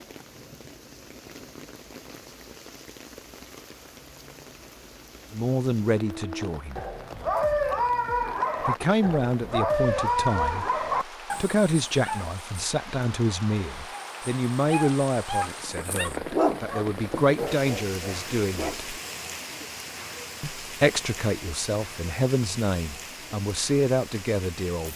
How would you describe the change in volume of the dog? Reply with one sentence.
The volume of the dog goes down.